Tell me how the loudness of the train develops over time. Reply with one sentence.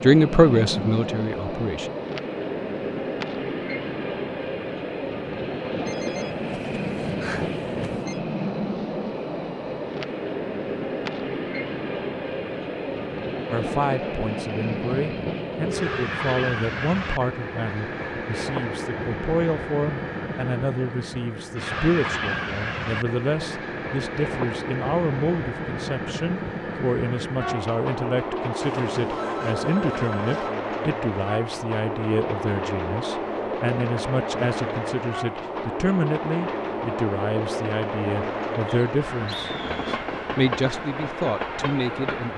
The volume of the train stays about the same.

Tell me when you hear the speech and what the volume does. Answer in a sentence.
You can hear the speech briefly from 0.0 to 1.9 s; and from 13.5 to 42.3 s, at a steady volume.